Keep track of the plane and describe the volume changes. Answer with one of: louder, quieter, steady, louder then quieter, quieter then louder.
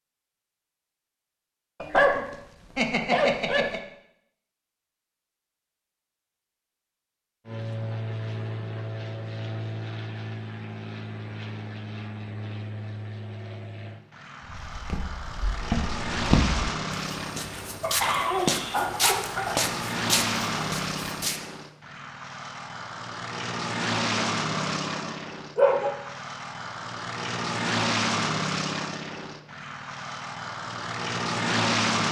louder.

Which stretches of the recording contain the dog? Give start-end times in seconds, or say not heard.
1.8-3.8, 17.8-19.5, 24.1-25.9.